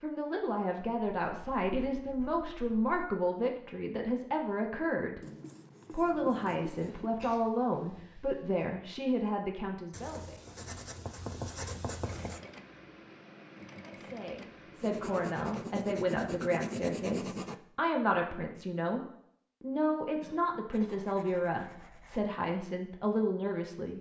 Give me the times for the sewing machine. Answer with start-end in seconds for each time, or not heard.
12.0-15.7.